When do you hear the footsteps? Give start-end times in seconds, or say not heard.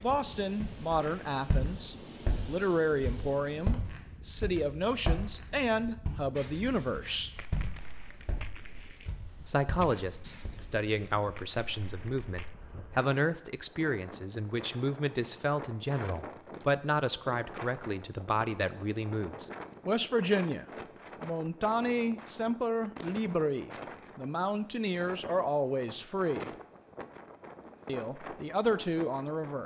0.6-10.6.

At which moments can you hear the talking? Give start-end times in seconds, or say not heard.
0.0-7.3, 9.4-26.5, 27.9-29.6.